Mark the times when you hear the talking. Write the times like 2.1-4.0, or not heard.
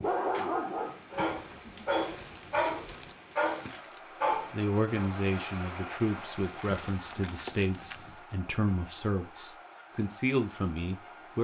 4.5-11.3.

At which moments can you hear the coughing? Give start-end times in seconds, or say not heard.
not heard.